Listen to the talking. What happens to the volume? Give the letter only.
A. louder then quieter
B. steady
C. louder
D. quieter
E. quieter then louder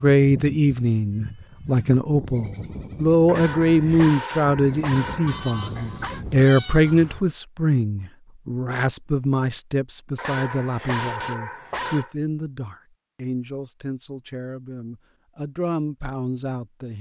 D.